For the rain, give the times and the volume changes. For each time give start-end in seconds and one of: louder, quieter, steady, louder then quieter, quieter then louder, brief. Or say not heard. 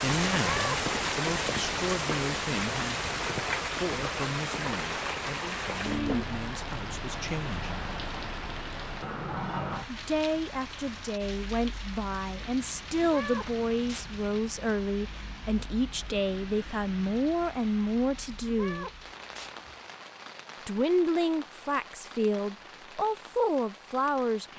0.0-24.5 quieter.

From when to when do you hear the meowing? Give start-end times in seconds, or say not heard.
0.3-0.8, 13.0-14.1, 18.4-19.6.